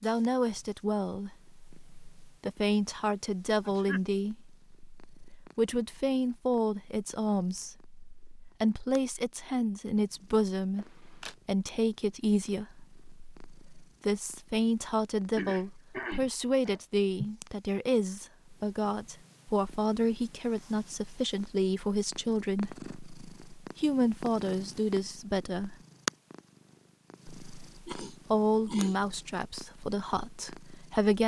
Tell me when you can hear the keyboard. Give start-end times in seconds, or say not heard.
not heard.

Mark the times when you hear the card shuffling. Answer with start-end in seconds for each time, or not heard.
10.8-11.3.